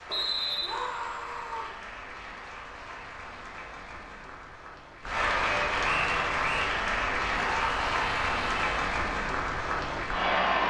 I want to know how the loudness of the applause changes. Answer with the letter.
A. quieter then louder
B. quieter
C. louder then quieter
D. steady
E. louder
E.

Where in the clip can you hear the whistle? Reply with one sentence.
The whistle can be heard from 0.1 to 0.7 s and from 5.8 to 6.7 s.